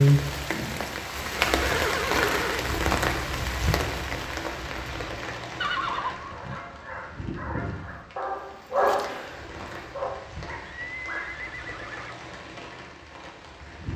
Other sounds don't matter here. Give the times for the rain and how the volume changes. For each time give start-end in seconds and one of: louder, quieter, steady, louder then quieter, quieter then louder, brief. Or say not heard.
0.0-13.9 quieter.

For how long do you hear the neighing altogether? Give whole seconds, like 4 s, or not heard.
5 s.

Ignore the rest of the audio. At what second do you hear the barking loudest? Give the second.
9 s.